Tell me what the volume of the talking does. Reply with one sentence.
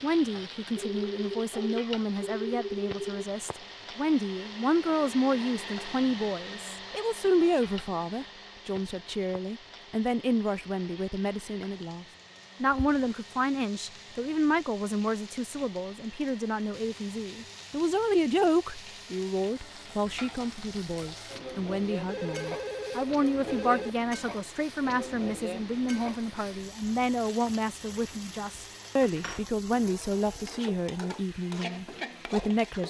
The loudness of the talking stays about the same.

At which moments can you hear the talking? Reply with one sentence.
The talking can be heard from 0.0 to 32.8 s.